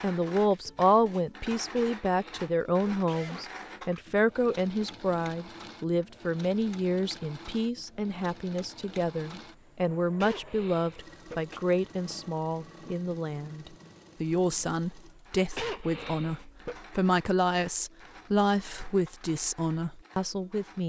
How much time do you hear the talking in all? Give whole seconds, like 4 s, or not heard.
21 s.